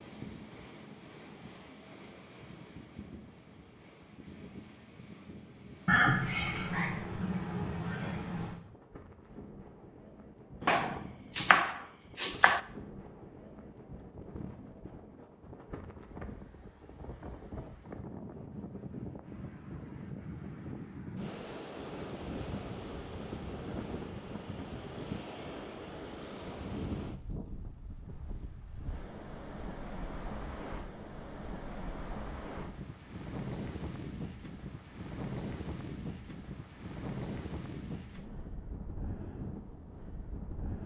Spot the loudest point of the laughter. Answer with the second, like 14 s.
6 s.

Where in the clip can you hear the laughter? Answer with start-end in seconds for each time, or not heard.
5.8-8.6.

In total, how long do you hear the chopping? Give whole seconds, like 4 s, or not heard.
2 s.